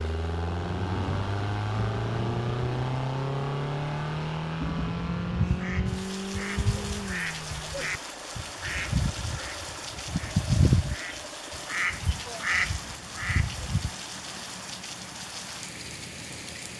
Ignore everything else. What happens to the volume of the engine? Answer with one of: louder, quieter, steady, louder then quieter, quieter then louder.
quieter.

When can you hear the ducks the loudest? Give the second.
11 s.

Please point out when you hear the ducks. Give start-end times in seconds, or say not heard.
5.3-13.9.